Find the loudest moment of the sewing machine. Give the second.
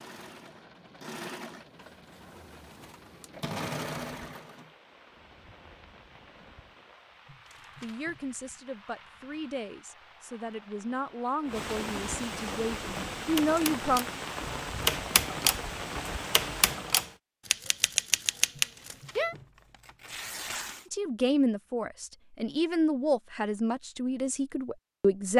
4 s.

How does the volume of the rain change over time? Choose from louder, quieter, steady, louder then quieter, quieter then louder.
louder.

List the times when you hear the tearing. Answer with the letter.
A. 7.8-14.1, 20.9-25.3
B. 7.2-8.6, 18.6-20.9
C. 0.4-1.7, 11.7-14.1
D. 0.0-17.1
B.